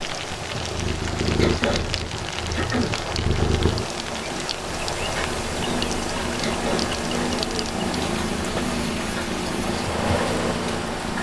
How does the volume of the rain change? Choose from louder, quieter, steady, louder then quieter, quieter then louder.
steady.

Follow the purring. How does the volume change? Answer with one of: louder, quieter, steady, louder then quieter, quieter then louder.
steady.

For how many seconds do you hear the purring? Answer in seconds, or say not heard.
11 s.